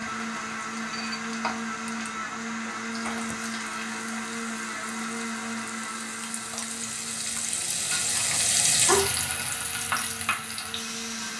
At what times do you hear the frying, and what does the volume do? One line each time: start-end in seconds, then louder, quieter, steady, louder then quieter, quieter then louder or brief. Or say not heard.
0.0-11.3 louder.